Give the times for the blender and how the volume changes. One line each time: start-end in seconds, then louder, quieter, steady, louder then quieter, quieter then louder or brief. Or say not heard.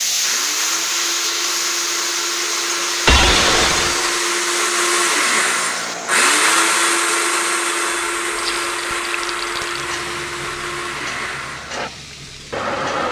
0.0-13.0 louder then quieter.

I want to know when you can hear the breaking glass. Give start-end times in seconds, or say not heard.
3.0-4.3.